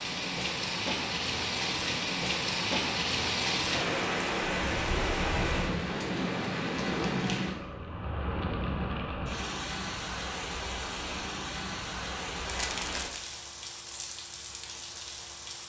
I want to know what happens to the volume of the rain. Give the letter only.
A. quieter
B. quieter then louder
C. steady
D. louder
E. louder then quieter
A.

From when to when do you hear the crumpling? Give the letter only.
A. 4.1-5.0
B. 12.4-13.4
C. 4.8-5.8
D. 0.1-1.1
B.